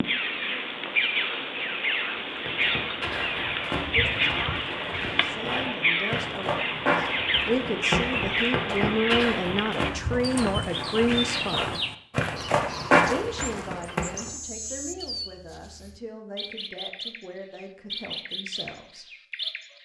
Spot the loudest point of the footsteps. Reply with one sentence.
The loudest moment of the footsteps is at 13 seconds.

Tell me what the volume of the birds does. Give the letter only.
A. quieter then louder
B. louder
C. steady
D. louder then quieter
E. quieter
E.